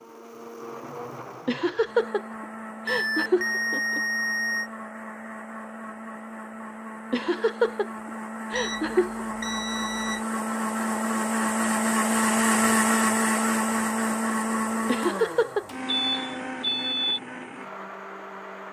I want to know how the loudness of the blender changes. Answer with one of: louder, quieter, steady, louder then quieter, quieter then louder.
louder then quieter.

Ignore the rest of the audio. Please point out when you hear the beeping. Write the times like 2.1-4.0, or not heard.
2.9-4.7, 8.6-10.2, 15.7-17.2.